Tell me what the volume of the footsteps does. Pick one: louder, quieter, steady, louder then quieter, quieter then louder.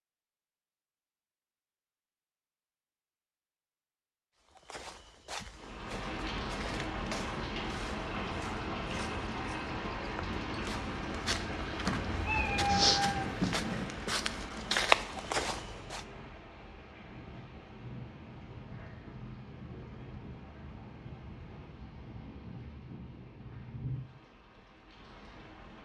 louder.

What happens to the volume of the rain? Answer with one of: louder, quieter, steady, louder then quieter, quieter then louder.
quieter.